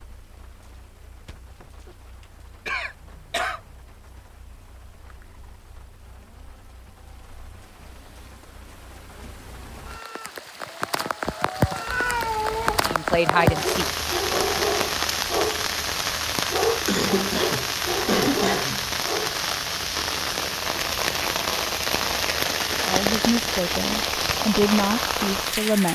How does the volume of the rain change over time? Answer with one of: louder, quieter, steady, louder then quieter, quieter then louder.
louder.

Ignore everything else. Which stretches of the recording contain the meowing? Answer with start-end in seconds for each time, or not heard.
11.8-13.0.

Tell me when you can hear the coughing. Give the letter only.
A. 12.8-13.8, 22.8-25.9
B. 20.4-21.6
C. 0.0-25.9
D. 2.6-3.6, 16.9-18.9
D.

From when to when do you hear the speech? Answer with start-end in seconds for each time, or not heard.
12.8-13.8, 22.8-25.9.